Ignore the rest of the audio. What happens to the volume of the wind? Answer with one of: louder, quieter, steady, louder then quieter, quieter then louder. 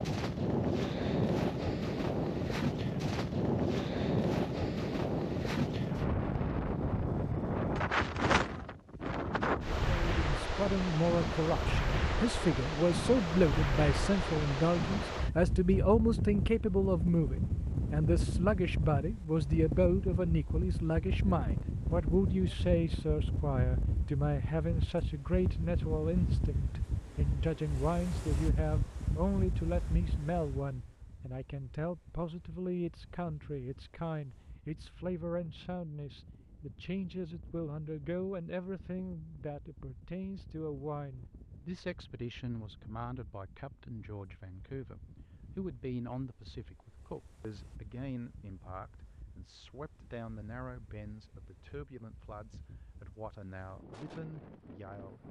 quieter.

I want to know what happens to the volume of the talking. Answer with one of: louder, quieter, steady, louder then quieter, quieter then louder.
quieter.